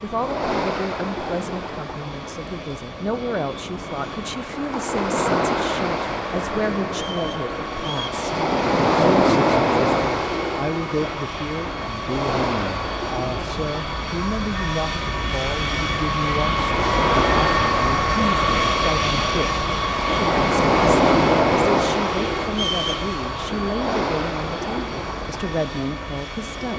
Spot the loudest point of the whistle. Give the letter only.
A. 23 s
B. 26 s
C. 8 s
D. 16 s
A.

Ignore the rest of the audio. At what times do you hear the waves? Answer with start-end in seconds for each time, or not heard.
0.1-26.7.